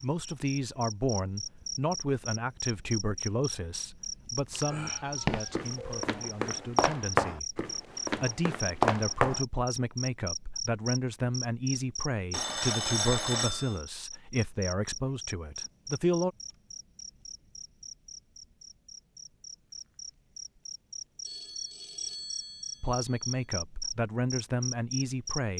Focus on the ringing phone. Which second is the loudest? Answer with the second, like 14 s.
13 s.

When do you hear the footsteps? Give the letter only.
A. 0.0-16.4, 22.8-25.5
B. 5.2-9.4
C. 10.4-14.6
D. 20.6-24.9
B.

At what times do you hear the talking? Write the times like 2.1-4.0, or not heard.
0.0-16.4, 22.8-25.5.